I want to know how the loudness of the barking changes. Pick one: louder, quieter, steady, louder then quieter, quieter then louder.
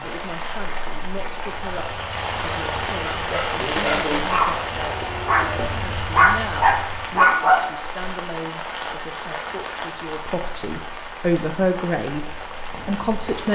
louder.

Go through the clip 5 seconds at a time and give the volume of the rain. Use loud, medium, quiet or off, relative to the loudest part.
loud, loud, medium.